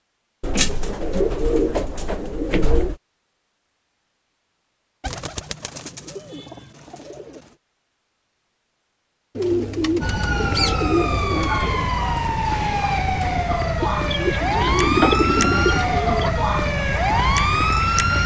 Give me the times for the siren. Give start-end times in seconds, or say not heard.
10.0-18.2.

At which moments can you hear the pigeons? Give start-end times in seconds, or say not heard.
0.4-3.0, 5.0-7.4, 9.3-11.9, 13.8-16.4.